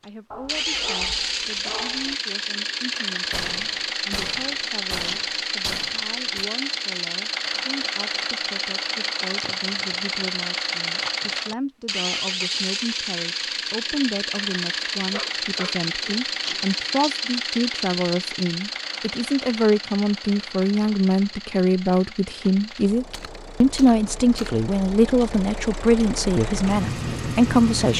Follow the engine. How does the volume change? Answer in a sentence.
The volume of the engine goes down.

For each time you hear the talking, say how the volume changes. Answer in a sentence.
You can hear the talking from 0.0 to 27.9 s, getting louder.